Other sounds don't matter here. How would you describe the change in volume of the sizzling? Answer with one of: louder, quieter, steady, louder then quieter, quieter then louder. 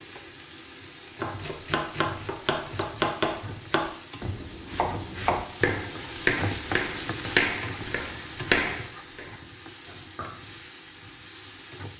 louder then quieter.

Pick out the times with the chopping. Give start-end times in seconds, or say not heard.
1.2-10.3.